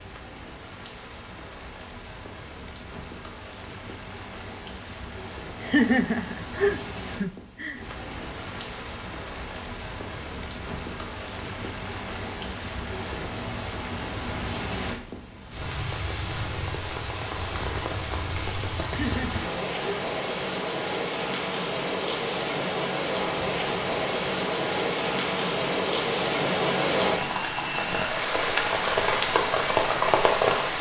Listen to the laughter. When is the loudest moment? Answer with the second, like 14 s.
6 s.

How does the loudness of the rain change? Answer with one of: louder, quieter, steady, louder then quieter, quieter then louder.
louder.